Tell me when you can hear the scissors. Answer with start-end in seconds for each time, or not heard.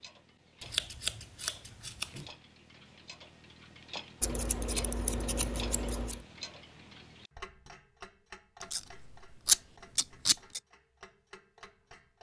0.6-2.3, 4.2-6.2, 8.6-10.6.